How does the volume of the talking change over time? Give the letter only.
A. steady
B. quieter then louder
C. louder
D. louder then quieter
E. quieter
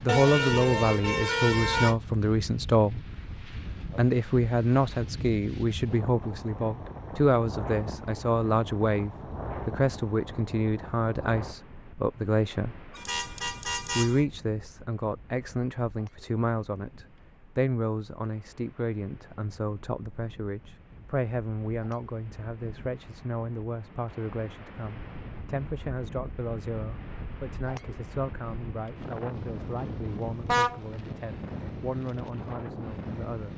E.